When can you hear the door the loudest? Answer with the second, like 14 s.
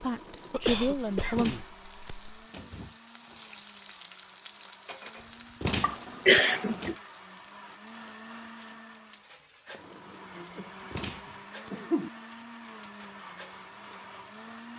6 s.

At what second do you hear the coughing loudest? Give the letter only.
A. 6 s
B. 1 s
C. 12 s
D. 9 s
A.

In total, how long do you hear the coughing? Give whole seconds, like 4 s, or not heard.
5 s.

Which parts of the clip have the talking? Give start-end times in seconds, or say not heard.
0.0-1.6.